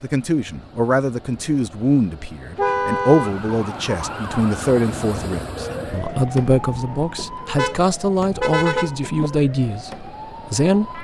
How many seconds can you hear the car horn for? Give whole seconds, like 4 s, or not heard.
3 s.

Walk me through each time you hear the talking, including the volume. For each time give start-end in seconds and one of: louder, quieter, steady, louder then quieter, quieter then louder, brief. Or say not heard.
0.0-10.9 steady.